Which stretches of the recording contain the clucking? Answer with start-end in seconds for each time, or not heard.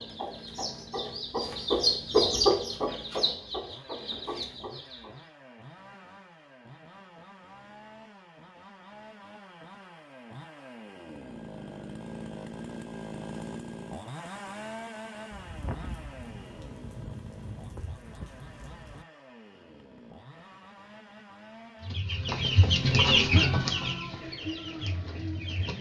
0.0-5.2, 21.8-25.7.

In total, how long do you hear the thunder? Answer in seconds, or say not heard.
4 s.